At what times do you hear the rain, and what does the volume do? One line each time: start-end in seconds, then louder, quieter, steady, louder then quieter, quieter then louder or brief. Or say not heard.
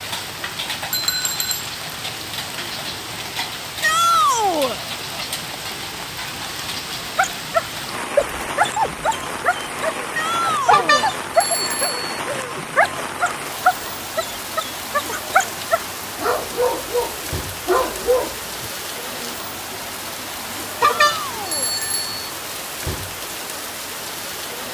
0.0-24.6 steady.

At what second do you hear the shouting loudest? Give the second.
4 s.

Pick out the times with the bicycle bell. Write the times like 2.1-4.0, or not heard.
0.9-1.7, 10.7-12.2, 20.8-22.2.